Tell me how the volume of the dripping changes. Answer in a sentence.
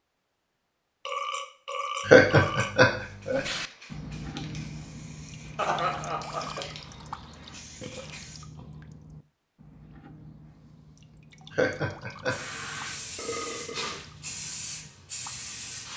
The volume of the dripping goes down.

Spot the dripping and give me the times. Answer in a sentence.
The dripping can be heard from 3.3 to 15.9 s.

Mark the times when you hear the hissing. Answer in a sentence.
The hissing can be heard from 3.0 to 8.4 s and from 12.2 to 15.9 s.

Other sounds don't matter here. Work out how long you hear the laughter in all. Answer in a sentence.
The laughter can be heard for 3 seconds in total.